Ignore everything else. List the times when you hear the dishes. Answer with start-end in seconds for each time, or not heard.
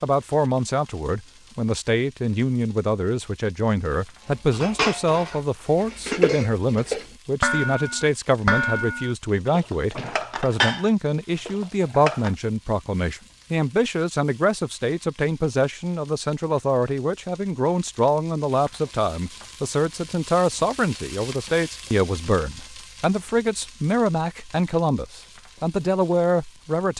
4.5-12.3.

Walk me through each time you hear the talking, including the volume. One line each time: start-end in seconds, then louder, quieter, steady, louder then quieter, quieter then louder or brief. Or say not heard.
0.0-26.9 steady.